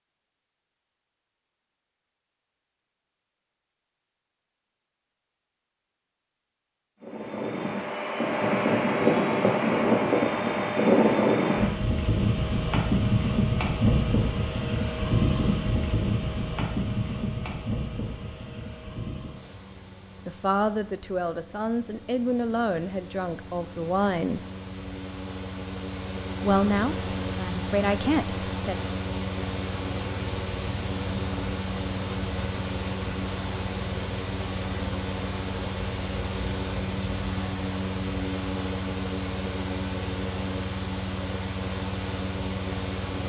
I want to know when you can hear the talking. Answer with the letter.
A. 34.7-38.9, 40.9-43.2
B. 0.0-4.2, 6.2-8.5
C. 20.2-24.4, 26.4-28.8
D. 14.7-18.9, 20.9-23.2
C.